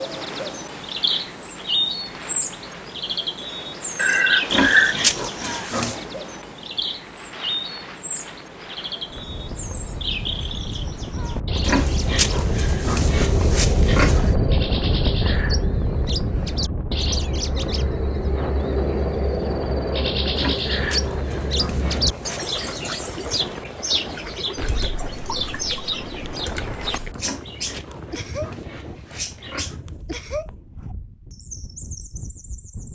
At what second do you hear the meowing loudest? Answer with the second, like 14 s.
5 s.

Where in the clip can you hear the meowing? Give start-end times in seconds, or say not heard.
4.0-5.0, 24.6-27.1.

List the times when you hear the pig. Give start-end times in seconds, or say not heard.
4.5-6.0, 11.6-14.3, 20.4-22.8, 27.2-29.8.